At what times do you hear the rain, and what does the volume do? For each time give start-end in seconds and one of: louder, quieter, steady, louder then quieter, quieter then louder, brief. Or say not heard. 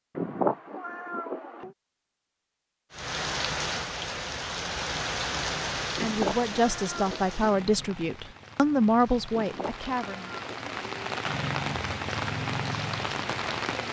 2.9-13.8 quieter then louder.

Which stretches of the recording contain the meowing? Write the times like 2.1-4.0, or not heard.
0.1-1.7, 6.0-7.3, 9.3-11.2.